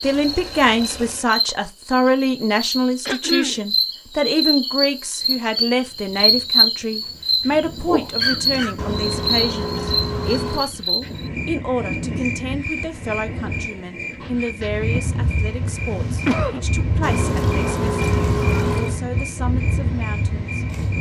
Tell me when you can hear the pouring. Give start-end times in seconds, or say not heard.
0.0-1.3, 8.8-10.7, 17.0-19.0.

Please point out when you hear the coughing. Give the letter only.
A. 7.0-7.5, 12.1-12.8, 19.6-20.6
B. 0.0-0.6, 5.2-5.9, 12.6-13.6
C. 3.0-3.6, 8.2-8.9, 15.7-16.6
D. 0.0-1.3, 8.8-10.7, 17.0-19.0
C.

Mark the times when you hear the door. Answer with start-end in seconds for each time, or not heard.
not heard.